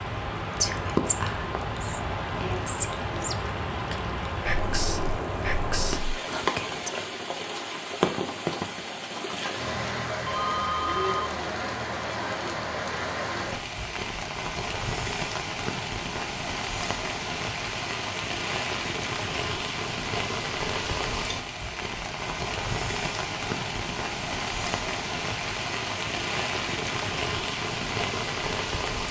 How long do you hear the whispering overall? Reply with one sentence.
The whispering can be heard for 6 seconds in total.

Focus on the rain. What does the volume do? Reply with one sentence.
The volume of the rain stays about the same.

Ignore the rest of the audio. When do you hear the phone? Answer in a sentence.
You can hear the phone from 10.2 to 11.3 s.